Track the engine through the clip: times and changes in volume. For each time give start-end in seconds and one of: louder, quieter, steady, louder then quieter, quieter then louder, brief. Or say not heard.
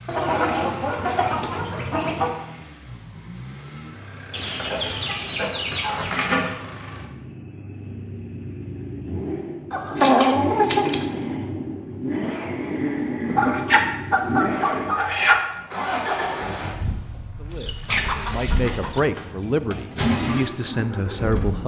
0.0-21.6 louder.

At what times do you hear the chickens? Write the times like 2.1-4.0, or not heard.
0.1-2.3, 4.3-6.6, 9.7-11.1, 13.2-15.4, 17.5-19.0.